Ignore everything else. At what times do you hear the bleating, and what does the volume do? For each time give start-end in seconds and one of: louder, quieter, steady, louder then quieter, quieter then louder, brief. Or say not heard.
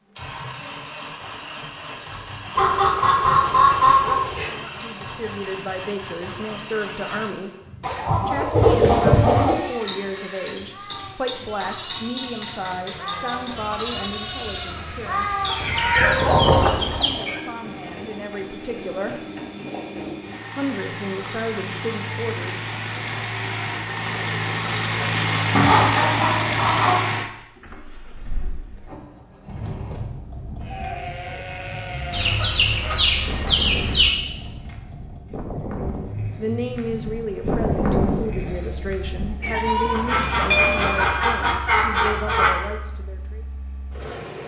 10.7-17.2 louder
30.6-41.2 louder.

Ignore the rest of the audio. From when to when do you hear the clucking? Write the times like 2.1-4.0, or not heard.
2.5-4.5, 7.8-9.6, 15.4-17.4, 25.5-27.1, 32.1-34.1, 40.0-42.5.